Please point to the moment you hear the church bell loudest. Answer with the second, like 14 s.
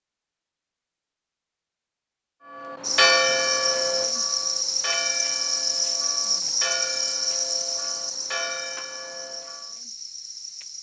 3 s.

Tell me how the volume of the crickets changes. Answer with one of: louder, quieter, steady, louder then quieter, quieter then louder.
quieter.